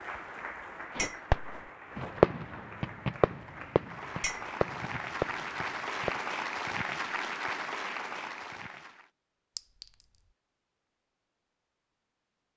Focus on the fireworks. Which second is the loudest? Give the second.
2 s.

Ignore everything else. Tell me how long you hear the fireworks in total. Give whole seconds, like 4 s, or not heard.
5 s.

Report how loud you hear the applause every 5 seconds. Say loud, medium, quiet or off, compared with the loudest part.
medium, loud, off.